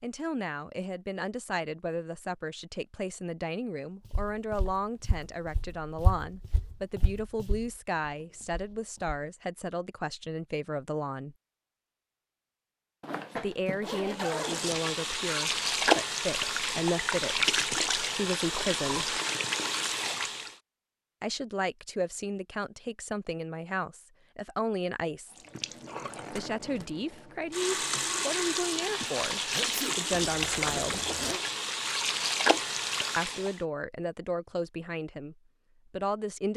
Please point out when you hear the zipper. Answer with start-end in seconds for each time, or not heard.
13.0-14.7, 30.2-31.4.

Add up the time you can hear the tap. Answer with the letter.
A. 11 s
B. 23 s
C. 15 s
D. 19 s
C.